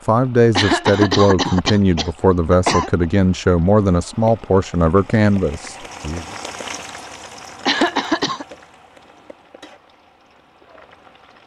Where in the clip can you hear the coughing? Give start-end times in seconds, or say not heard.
0.6-2.9, 7.7-8.4.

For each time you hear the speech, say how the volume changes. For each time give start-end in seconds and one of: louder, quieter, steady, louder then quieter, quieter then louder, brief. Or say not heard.
0.1-6.2 steady.